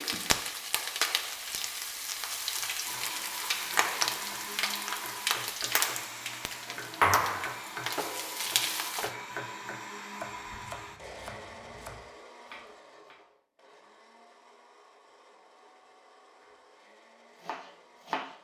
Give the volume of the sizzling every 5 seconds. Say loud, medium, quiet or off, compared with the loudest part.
loud, loud, off, off.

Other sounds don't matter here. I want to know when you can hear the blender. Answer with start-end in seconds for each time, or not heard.
2.8-18.3.